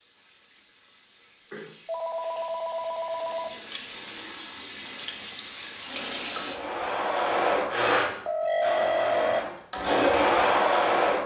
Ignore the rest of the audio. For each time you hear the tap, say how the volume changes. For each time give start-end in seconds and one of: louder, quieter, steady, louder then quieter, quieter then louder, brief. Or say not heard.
0.0-6.6 louder.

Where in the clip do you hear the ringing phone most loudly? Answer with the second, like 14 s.
9 s.